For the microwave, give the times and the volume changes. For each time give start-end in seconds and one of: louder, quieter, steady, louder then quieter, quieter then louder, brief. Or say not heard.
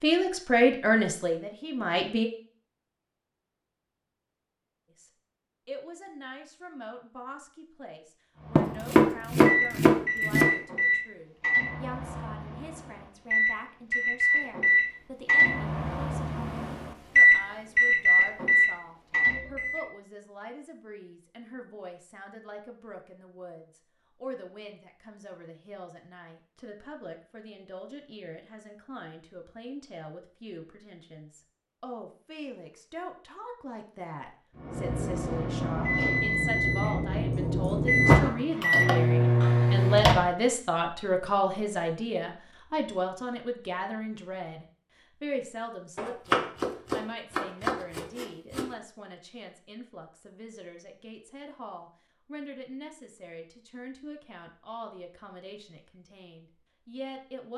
8.4-19.9 quieter then louder
34.5-40.2 louder.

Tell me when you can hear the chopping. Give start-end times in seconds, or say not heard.
8.6-10.5, 46.0-48.6.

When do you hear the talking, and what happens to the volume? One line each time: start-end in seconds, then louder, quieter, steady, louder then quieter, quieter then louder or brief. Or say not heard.
0.0-2.2 brief
4.9-57.5 louder then quieter.